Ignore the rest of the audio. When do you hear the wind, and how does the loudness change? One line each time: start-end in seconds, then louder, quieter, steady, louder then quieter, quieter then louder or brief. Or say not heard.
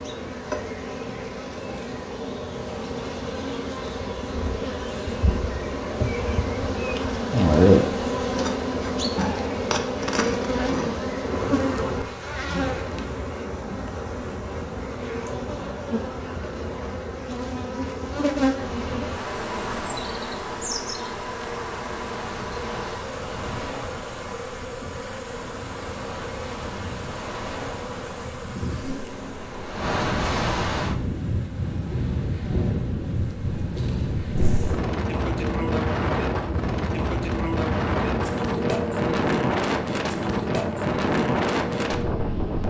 18.6-42.6 louder.